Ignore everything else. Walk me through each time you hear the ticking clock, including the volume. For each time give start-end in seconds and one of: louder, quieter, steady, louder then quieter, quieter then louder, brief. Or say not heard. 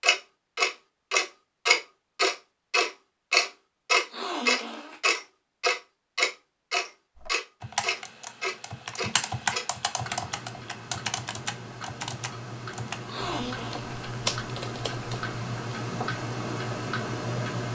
0.0-17.6 quieter then louder.